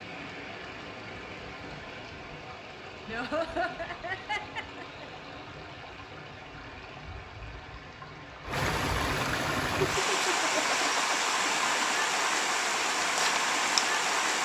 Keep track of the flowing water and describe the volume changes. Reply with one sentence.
The loudness of the flowing water goes up.